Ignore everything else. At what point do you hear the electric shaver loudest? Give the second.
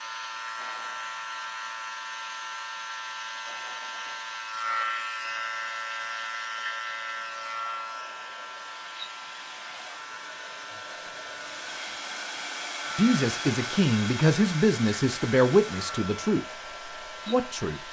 5 s.